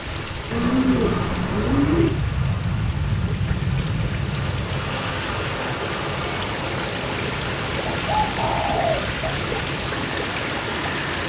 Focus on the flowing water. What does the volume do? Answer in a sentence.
The volume of the flowing water goes up.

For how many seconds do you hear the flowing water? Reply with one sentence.
You can hear the flowing water for 11 seconds altogether.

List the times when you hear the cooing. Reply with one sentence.
The cooing can be heard from 0.5 to 2.1 s and from 7.8 to 9.2 s.